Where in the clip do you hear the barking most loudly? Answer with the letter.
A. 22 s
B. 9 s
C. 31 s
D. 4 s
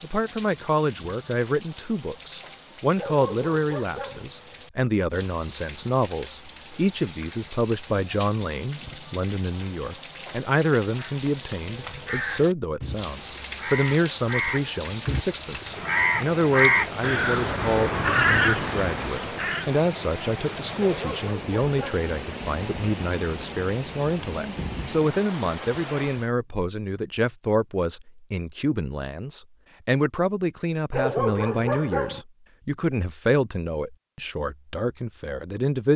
C.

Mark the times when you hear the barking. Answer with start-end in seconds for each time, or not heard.
3.0-4.2, 20.8-22.1, 30.9-32.2.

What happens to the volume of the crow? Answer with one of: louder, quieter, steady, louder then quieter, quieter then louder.
louder.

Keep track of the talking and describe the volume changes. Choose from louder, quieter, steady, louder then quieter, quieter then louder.
steady.